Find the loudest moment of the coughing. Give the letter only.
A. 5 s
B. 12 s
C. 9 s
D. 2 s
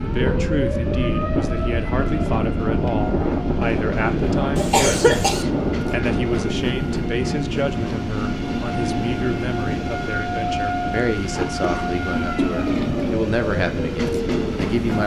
A.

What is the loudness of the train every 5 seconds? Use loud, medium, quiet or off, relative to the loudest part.
medium, loud, loud.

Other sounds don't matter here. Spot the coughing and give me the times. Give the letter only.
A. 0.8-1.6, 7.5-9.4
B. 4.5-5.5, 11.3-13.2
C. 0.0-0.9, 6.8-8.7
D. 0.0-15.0
B.